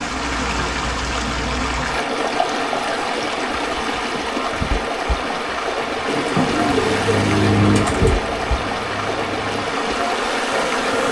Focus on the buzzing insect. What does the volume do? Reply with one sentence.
The volume of the buzzing insect goes down, then up.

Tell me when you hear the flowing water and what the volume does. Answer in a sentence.
You can hear the flowing water from 0.0 to 11.0 s, at a steady volume.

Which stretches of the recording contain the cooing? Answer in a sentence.
You can hear the cooing from 6.0 to 8.2 s.